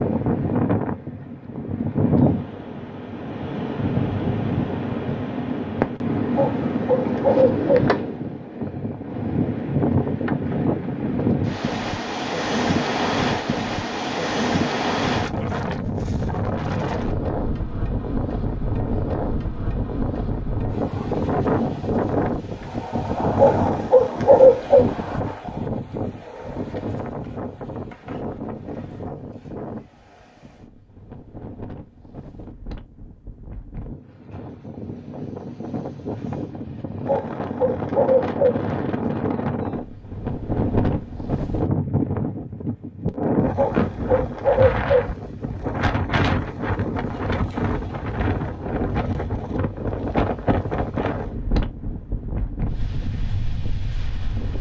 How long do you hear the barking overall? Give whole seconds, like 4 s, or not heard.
6 s.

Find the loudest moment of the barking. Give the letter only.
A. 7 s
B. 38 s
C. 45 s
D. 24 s
D.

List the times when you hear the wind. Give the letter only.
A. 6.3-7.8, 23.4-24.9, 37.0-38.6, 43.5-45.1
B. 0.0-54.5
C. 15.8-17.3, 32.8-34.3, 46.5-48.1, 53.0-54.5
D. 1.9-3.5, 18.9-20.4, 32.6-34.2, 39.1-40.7
B.